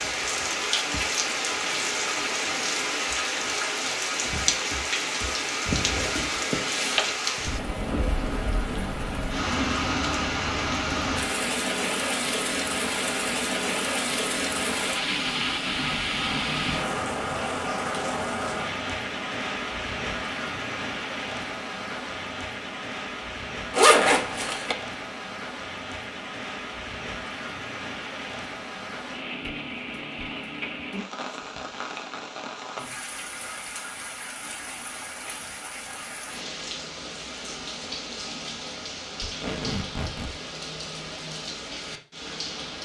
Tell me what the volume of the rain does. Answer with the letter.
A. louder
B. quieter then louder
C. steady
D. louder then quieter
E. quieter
E.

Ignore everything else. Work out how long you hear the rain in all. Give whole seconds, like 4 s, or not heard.
43 s.